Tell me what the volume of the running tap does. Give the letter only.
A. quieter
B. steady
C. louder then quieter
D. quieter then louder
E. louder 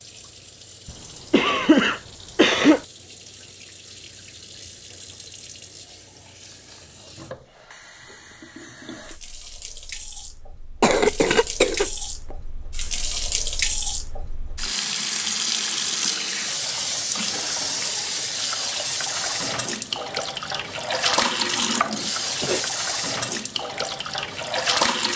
E.